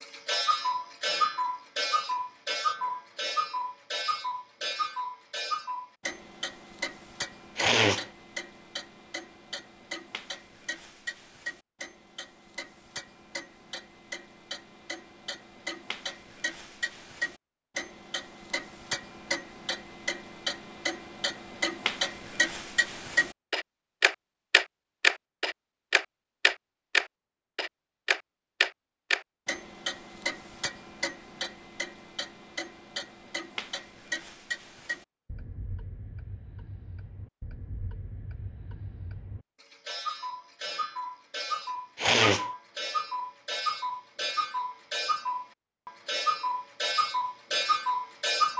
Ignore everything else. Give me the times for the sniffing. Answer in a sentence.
The sniffing can be heard from 7.5 to 8.1 s and from 42.0 to 42.5 s.